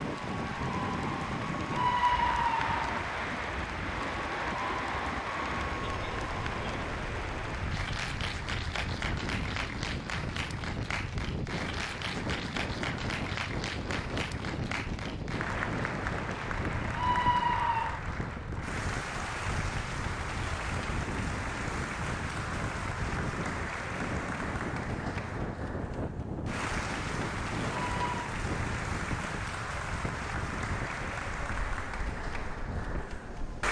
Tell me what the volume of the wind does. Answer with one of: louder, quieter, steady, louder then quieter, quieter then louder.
steady.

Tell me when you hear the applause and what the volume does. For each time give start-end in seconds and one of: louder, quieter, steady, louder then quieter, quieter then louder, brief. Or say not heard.
0.0-33.6 steady.